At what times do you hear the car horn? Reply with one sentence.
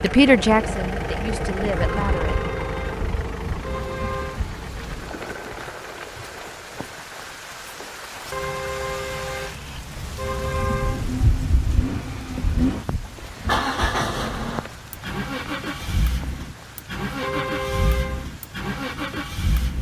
You can hear the car horn from 1.8 to 4.4 s, from 8.3 to 11.1 s and from 17.2 to 18.2 s.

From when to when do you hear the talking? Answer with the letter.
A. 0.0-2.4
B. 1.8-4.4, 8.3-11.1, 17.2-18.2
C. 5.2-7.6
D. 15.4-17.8
A.